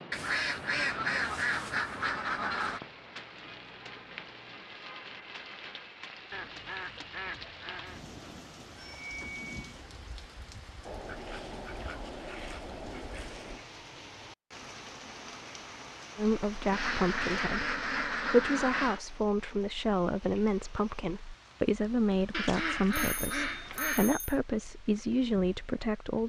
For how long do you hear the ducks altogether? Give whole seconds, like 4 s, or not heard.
11 s.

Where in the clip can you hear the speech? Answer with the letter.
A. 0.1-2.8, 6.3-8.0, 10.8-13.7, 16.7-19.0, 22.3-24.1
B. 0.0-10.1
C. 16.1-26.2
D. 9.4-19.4
C.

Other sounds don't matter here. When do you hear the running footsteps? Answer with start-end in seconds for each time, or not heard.
not heard.